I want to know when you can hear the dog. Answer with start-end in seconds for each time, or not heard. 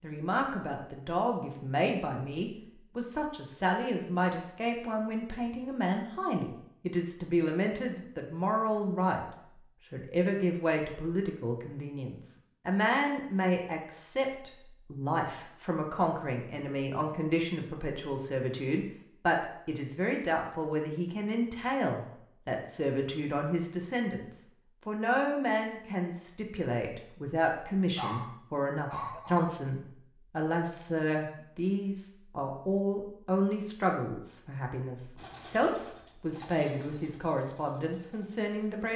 27.9-29.5.